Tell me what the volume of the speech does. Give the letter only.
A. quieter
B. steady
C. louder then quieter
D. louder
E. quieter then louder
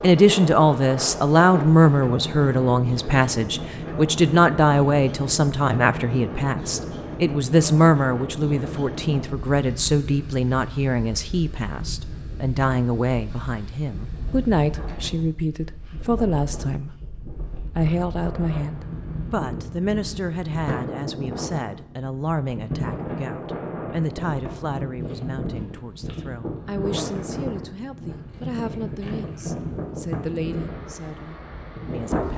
A.